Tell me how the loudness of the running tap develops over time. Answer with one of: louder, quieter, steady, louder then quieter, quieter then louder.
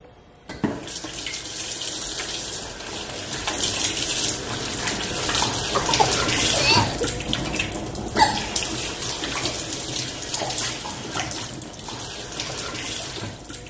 louder then quieter.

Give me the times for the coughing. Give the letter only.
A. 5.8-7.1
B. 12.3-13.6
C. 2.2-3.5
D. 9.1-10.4
A.